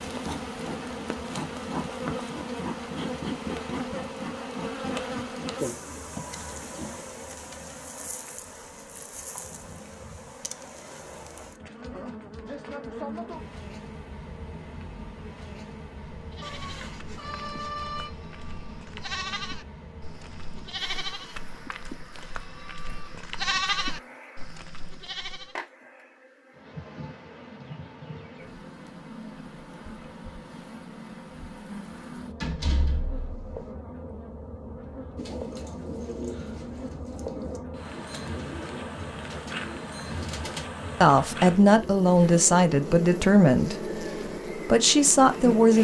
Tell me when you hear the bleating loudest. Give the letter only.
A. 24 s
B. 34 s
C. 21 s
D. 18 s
A.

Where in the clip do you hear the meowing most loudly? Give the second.
18 s.